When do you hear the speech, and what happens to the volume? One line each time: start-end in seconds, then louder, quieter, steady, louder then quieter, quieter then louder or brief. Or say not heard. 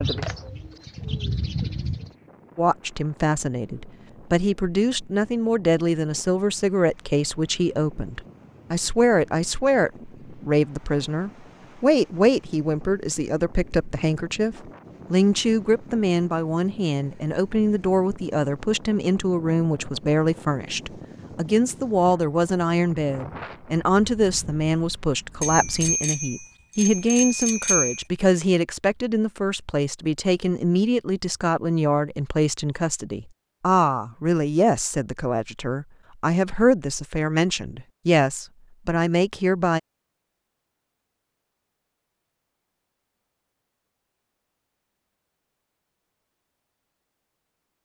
2.5-39.8 steady.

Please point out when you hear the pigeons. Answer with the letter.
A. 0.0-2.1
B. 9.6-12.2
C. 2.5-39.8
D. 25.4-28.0
A.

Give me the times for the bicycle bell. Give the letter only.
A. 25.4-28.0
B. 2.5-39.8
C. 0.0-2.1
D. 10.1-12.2
A.